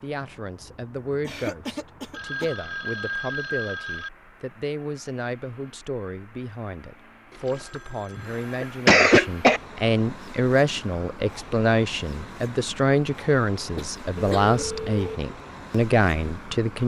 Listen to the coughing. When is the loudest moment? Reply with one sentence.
The volume of the coughing peaks at 9 seconds.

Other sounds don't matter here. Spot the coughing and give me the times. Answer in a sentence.
The coughing can be heard from 1.2 to 2.5 s, from 7.8 to 9.6 s and from 13.6 to 14.6 s.